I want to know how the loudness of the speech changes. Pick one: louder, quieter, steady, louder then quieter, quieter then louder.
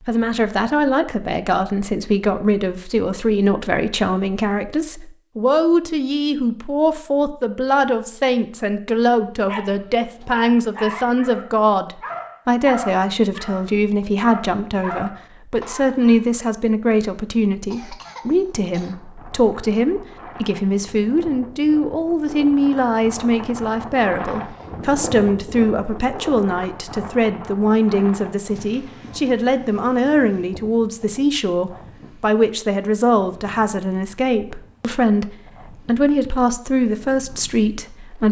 steady.